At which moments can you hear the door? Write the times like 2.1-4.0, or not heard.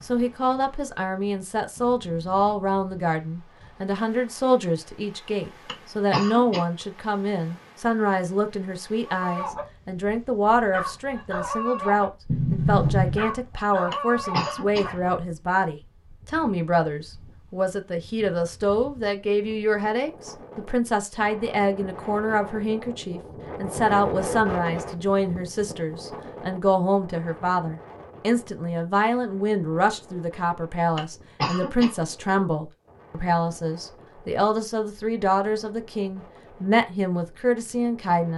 12.2-13.2.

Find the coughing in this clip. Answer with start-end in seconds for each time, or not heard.
5.7-6.7, 13.9-14.9, 30.9-31.9.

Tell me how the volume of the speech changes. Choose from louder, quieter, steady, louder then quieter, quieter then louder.
steady.